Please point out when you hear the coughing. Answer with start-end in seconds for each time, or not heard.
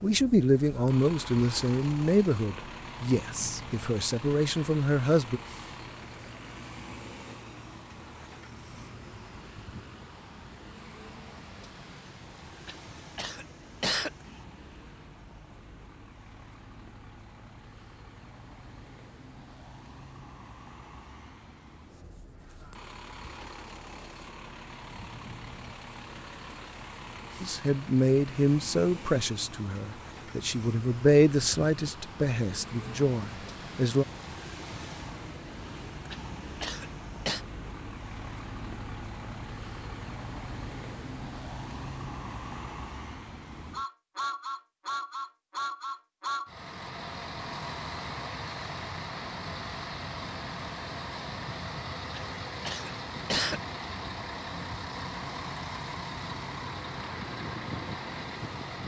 12.7-14.3, 36.1-37.4, 52.1-53.6.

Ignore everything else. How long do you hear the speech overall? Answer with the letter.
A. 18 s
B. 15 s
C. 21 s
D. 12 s
D.